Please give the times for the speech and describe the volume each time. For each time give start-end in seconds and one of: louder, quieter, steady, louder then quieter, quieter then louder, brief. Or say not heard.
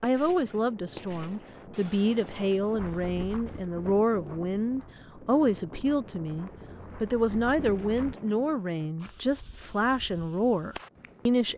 0.0-11.5 steady.